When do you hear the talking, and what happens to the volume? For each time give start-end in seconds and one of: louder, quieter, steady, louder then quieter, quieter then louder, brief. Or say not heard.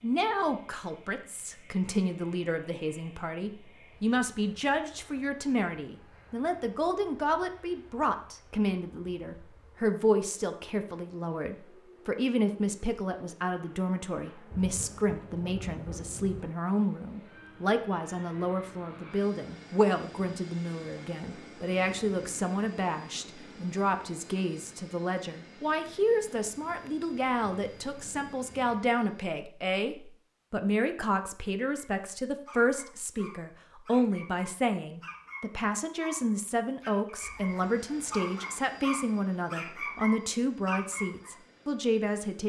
0.0-42.4 steady.